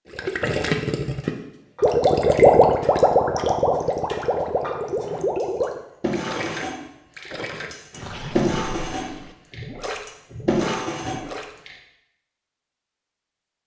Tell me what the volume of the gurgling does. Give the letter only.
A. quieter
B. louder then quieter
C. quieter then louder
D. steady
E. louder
A.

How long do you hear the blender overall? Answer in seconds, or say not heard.
not heard.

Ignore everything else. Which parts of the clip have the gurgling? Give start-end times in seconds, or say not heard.
0.1-11.5.